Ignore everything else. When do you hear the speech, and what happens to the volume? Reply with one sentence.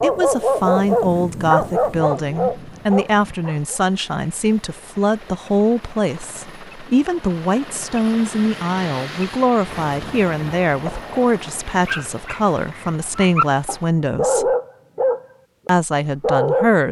You can hear the speech from 0.0 to 14.6 s, at a steady volume; and briefly from 15.7 to 16.8 s.